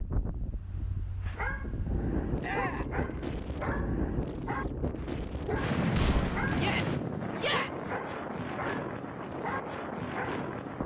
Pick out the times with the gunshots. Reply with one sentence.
You can hear the gunshots from 6.0 to 6.8 s.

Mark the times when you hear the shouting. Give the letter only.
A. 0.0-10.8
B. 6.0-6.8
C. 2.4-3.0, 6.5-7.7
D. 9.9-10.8
C.